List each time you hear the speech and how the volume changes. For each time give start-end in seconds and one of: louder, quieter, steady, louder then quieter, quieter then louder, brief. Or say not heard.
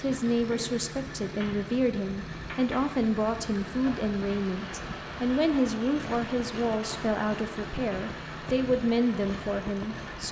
0.0-10.2 steady.